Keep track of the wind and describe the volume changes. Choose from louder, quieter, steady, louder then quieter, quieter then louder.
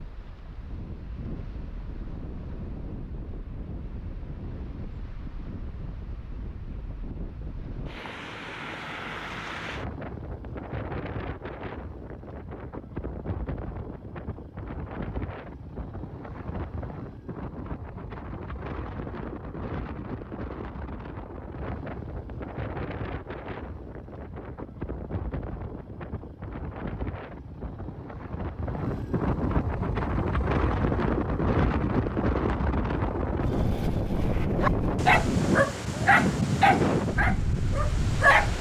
louder.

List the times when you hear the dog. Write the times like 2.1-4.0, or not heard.
34.6-38.5.